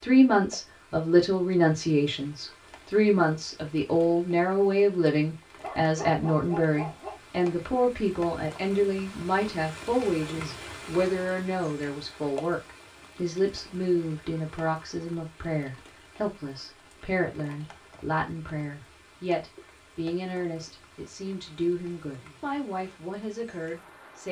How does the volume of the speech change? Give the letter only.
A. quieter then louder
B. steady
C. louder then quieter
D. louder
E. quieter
E.